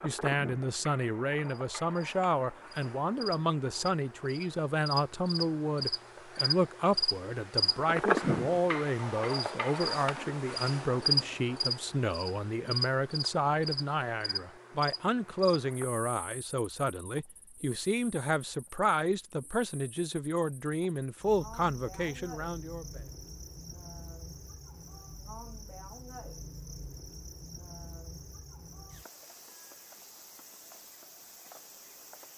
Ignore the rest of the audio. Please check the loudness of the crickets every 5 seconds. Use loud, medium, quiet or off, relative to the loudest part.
medium, loud, loud, quiet, quiet, quiet, quiet.